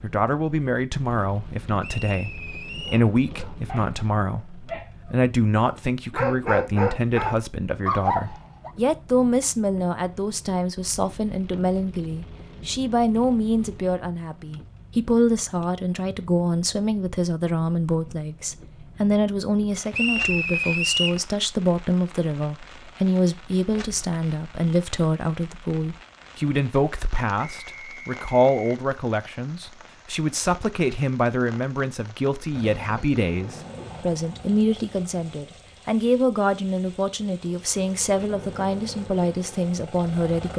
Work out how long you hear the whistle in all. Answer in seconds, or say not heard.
4 s.